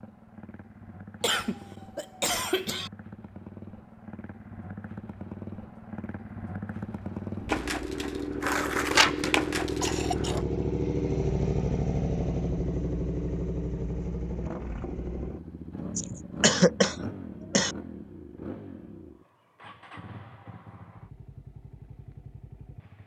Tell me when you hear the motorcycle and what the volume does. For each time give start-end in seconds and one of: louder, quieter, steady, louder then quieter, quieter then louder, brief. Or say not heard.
0.0-23.0 louder then quieter.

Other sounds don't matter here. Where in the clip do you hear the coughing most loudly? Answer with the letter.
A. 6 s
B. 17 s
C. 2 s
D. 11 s
B.